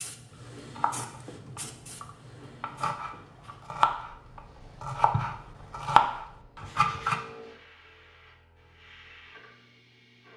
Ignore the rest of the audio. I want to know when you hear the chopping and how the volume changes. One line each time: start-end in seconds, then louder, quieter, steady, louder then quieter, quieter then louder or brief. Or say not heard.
0.6-7.2 louder.